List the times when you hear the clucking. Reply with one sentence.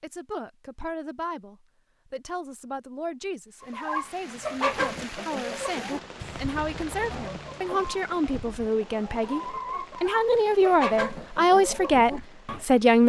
The clucking can be heard from 3.6 to 12.7 s.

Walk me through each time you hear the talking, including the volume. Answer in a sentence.
You can hear the talking from 0.0 to 13.0 s, getting louder.